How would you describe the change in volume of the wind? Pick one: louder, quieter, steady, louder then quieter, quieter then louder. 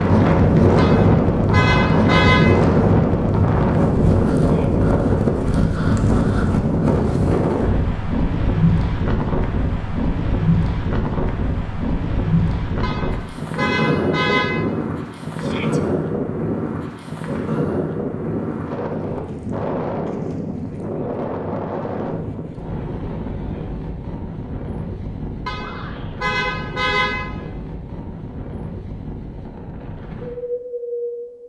quieter.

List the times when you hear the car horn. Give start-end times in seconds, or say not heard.
0.8-2.5, 12.8-14.6, 25.4-27.2.